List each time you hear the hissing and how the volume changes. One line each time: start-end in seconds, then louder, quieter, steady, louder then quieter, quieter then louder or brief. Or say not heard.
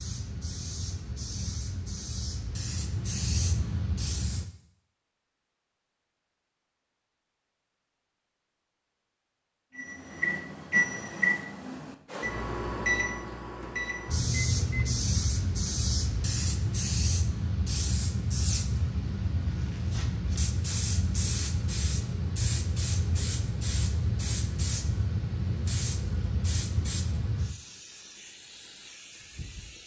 0.0-4.5 louder
14.1-29.8 quieter.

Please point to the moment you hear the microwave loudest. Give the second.
11 s.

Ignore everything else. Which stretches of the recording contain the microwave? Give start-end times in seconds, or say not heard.
9.8-15.1.